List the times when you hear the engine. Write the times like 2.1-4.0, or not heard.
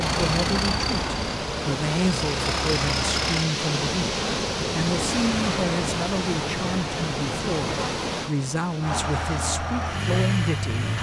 0.0-3.5, 8.8-10.9.